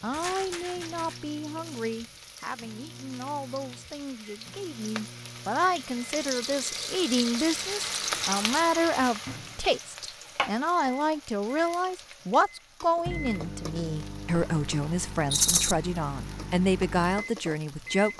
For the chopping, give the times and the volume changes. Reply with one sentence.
You can't hear the chopping here.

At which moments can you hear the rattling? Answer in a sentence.
The rattling can be heard from 0.1 to 1.2 s, from 6.2 to 8.5 s and from 15.3 to 15.8 s.